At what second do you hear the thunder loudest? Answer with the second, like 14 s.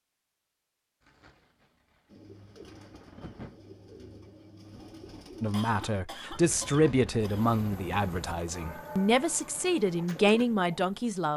3 s.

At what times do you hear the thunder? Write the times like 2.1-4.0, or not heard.
1.0-3.6.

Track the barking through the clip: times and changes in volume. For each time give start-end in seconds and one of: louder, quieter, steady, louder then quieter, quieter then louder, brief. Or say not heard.
not heard.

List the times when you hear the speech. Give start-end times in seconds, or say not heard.
5.4-11.3.